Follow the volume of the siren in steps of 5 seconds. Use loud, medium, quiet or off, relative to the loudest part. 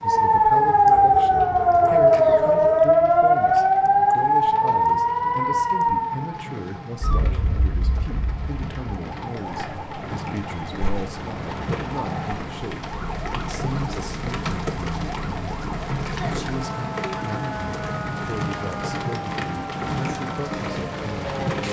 loud, medium, quiet, quiet, quiet.